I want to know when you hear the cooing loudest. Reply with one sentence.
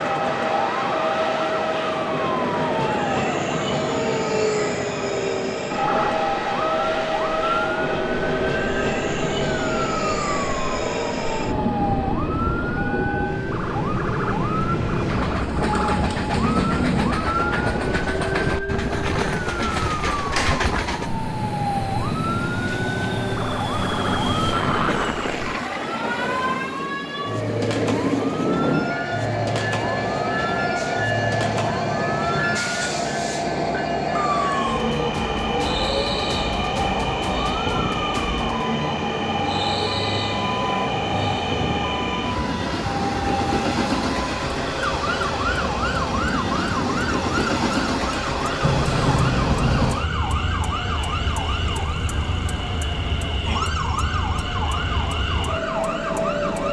The loudest moment of the cooing is at 17 seconds.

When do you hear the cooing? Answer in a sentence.
The cooing can be heard from 15.4 to 17.1 s and from 45.5 to 47.1 s.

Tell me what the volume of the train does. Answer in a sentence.
The loudness of the train stays about the same.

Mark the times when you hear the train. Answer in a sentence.
You can hear the train from 0.0 to 56.6 s.